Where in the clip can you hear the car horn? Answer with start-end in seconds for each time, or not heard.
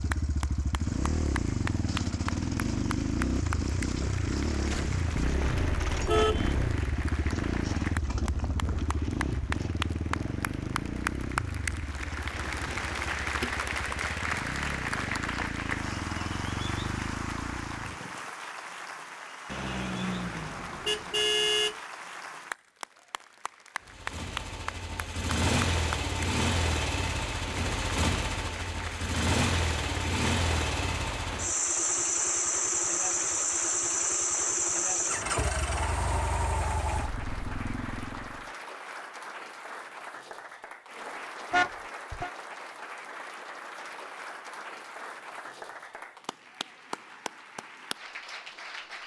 5.2-6.8, 19.4-21.8, 41.5-42.3.